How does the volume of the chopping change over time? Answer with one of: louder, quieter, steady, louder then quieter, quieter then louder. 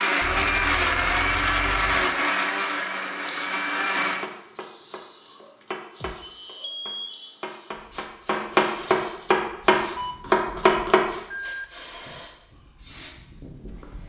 louder.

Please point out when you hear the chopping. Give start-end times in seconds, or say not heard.
4.2-11.1.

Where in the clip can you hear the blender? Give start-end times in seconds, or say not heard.
0.0-4.3.